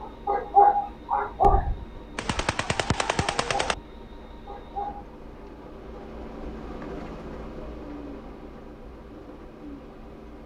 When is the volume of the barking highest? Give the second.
1 s.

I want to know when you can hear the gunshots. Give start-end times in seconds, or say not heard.
2.1-3.8.